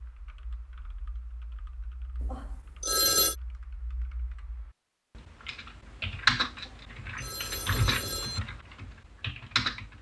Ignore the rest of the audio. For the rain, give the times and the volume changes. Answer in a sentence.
The rain can't be heard in this clip.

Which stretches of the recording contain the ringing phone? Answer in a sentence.
The ringing phone can be heard from 2.2 to 3.4 s and from 6.7 to 8.4 s.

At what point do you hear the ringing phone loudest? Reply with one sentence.
The volume of the ringing phone peaks at 3 seconds.